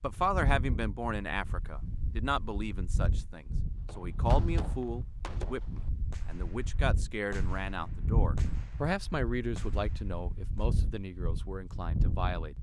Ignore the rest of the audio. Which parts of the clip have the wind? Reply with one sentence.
You can hear the wind from 0.0 to 12.5 s.